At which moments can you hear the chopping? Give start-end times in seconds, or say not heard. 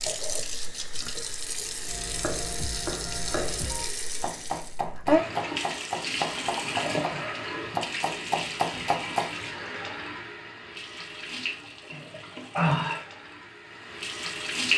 1.9-9.3.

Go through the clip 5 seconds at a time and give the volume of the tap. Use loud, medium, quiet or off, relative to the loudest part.
medium, loud, loud.